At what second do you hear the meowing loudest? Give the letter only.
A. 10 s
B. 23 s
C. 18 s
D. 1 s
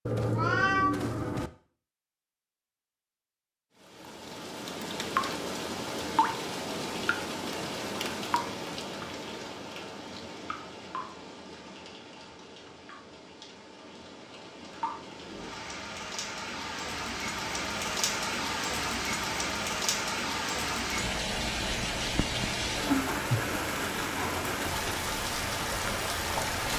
D.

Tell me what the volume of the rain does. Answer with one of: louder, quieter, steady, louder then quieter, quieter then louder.
quieter then louder.